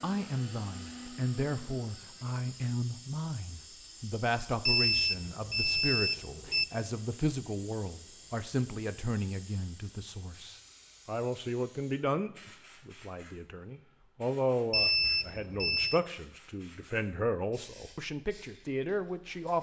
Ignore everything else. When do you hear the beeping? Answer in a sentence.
You can hear the beeping from 4.7 to 6.7 s and from 14.7 to 16.0 s.